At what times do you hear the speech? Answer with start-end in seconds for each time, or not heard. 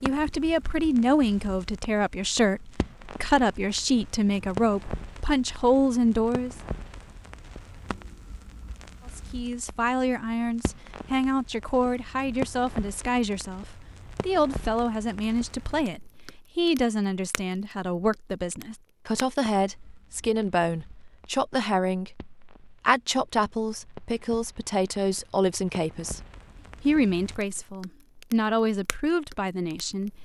0.0-6.5, 9.2-26.2, 26.8-30.1.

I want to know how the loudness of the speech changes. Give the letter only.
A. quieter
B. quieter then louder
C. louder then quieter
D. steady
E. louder
D.